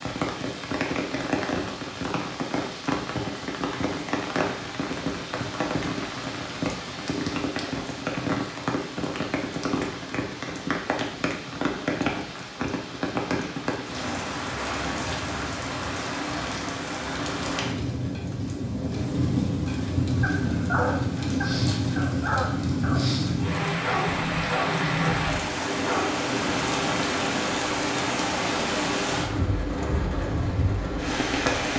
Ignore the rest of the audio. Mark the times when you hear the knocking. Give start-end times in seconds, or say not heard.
not heard.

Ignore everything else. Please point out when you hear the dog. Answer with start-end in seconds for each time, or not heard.
20.1-26.1.